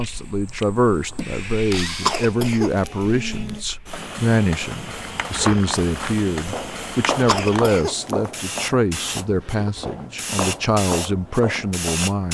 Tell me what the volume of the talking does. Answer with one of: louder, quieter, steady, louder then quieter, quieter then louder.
steady.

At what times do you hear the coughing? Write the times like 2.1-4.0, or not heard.
2.0-3.6, 7.2-8.3.